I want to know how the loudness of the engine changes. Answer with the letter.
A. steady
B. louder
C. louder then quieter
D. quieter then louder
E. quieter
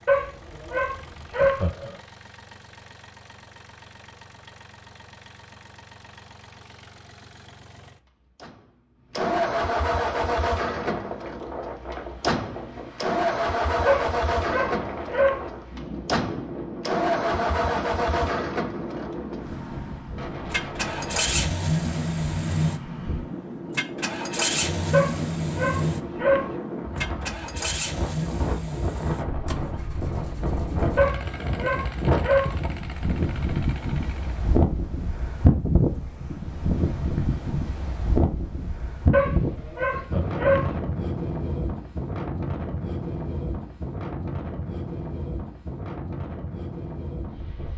C.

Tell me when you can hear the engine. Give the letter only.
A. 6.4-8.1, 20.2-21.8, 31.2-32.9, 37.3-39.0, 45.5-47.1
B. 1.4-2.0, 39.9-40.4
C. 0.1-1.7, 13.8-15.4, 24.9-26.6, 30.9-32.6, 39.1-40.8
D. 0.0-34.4
D.